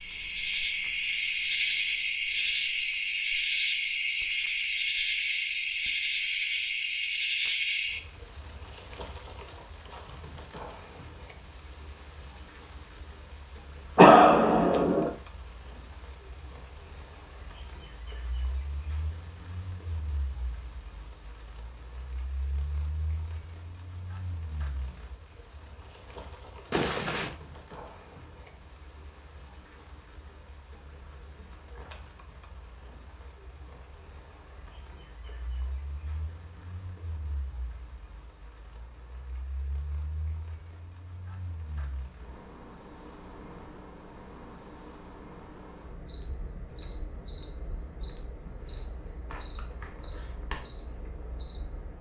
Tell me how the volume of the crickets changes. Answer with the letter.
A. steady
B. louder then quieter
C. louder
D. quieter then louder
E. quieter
E.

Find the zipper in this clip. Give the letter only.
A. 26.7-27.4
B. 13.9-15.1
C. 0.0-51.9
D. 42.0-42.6
A.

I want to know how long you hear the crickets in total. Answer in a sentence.
The crickets can be heard for 52 seconds in total.